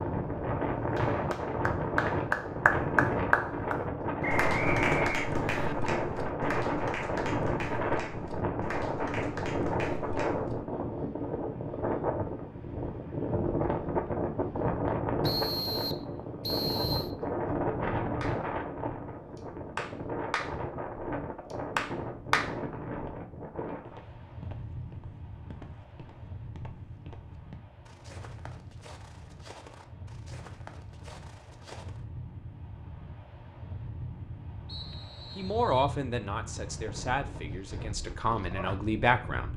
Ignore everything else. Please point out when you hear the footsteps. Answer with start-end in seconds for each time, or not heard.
23.8-32.0.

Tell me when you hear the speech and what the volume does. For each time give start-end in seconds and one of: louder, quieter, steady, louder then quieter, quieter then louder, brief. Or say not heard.
35.4-39.5 quieter then louder.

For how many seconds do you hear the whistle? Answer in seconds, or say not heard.
5 s.